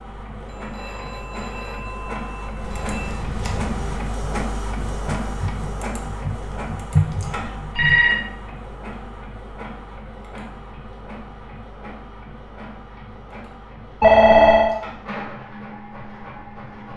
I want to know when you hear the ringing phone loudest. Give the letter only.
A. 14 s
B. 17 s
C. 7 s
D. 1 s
A.